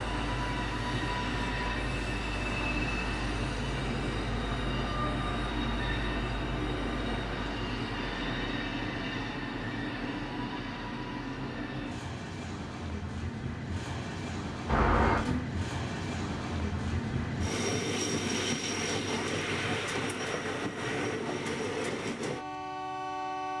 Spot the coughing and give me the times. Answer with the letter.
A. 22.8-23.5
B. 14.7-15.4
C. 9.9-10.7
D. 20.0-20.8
B.